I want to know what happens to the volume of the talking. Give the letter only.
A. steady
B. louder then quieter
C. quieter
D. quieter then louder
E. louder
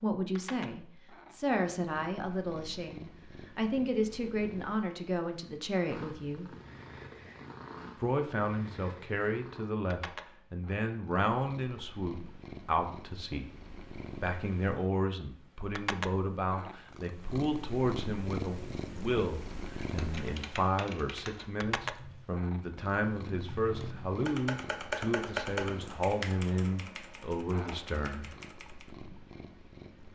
A.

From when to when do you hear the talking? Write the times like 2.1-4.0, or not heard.
0.0-6.5, 8.0-13.5, 14.2-28.2.